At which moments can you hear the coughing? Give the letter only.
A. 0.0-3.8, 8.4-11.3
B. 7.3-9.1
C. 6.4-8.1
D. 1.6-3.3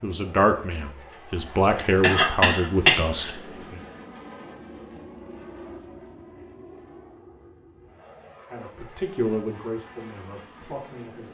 D.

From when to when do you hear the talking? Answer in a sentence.
You can hear the talking from 0.0 to 3.8 s and from 8.4 to 11.3 s.